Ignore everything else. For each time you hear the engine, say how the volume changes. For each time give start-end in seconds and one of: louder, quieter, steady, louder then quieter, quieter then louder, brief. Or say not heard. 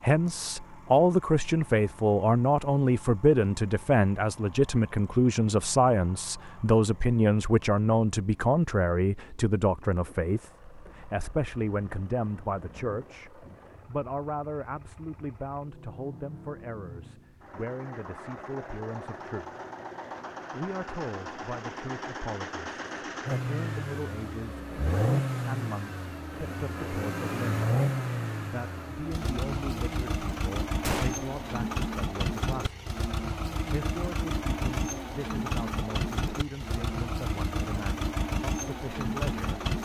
0.0-39.8 louder.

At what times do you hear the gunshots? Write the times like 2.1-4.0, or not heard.
30.8-31.2.